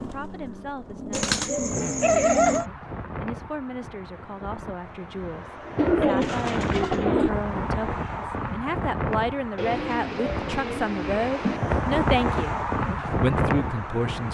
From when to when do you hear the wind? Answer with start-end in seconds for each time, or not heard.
2.5-14.2.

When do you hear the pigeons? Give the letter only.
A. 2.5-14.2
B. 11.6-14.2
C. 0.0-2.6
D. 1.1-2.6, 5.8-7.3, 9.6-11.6
D.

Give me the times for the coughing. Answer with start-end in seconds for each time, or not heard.
not heard.